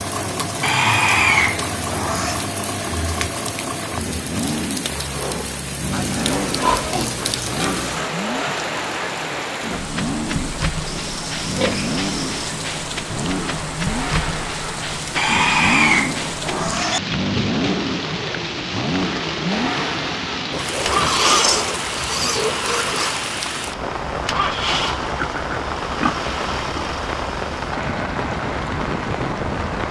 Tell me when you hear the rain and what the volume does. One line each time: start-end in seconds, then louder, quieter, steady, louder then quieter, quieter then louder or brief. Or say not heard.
0.0-29.8 steady.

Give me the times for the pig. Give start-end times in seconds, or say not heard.
0.6-2.5, 5.9-8.1, 10.8-12.3, 15.2-17.0, 20.5-23.1, 25.1-26.9.